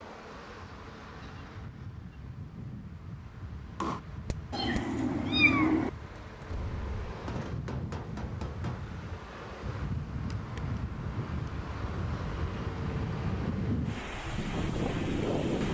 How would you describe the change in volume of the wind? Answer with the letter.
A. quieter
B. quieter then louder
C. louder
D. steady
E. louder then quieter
C.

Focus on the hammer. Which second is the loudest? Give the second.
4 s.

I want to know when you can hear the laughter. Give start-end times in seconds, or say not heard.
not heard.